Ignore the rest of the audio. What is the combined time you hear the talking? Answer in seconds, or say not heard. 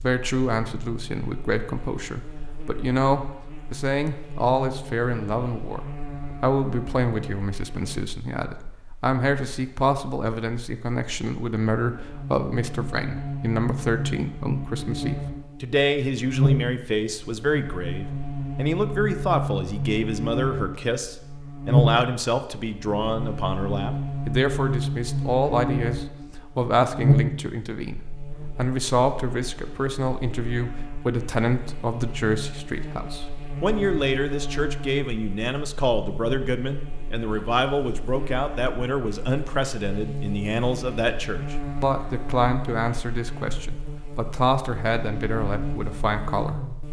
46 s.